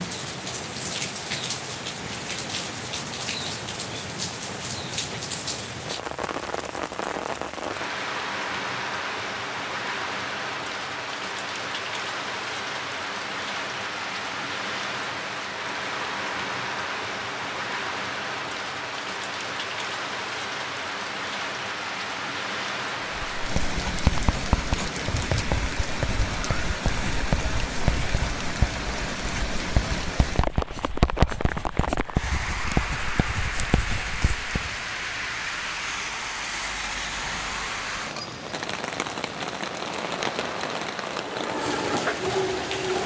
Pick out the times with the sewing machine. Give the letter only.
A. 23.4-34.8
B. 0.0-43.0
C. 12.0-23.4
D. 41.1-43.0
D.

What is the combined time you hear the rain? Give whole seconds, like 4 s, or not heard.
43 s.